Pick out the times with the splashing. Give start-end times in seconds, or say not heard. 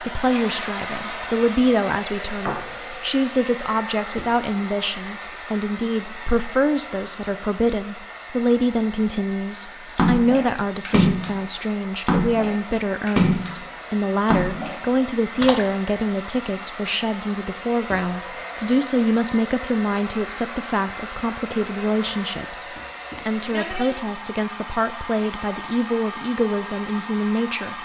9.8-15.7.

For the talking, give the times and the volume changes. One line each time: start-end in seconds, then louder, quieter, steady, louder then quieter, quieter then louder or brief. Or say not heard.
0.0-27.7 steady.